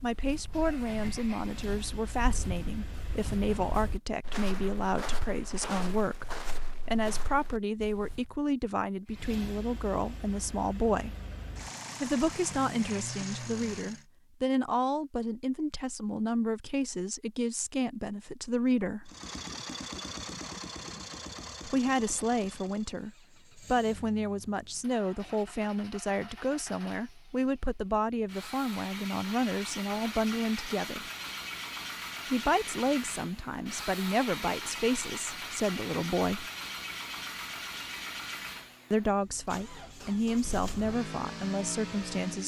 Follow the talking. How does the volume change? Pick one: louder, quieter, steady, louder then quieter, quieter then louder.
steady.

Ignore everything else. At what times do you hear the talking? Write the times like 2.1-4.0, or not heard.
0.0-11.2, 12.0-19.1, 21.6-31.1, 32.2-36.5, 38.9-42.4.